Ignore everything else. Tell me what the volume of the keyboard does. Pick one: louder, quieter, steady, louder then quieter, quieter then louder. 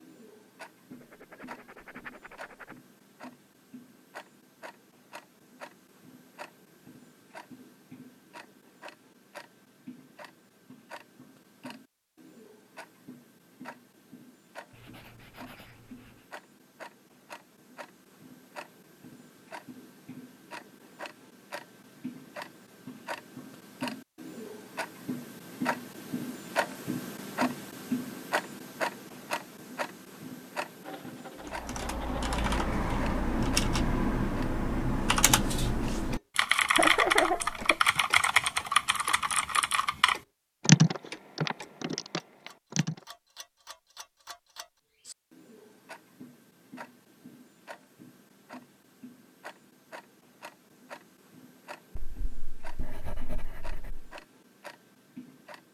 louder.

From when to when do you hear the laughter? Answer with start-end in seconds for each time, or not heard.
36.8-37.8.